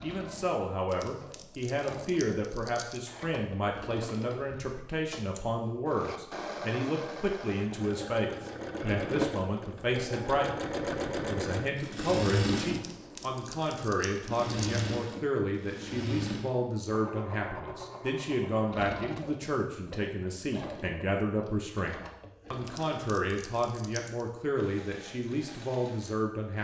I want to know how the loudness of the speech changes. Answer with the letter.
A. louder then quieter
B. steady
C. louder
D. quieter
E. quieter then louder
B.